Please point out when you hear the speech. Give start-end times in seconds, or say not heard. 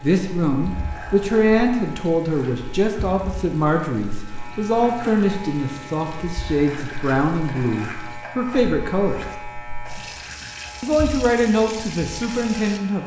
0.0-9.2, 10.8-13.0.